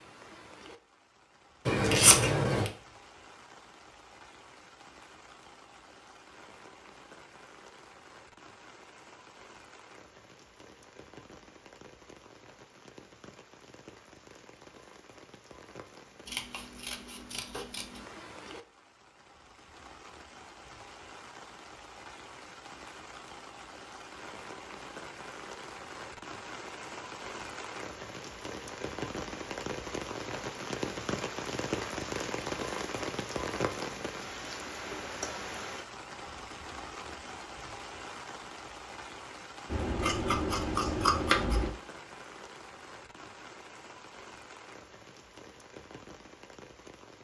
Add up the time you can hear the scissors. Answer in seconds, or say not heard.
5 s.